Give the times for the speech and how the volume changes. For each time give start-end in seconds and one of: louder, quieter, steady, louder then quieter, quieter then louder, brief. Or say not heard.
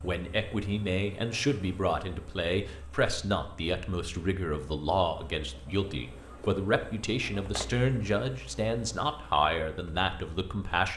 0.0-10.9 steady.